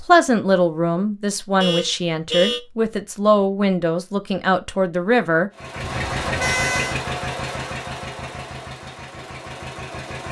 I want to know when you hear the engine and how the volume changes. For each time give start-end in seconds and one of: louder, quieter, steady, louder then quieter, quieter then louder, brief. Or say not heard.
5.5-10.2 quieter.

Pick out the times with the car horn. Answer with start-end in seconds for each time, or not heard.
1.6-2.6, 5.8-7.0.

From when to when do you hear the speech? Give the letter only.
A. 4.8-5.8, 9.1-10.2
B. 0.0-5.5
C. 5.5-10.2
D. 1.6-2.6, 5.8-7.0
B.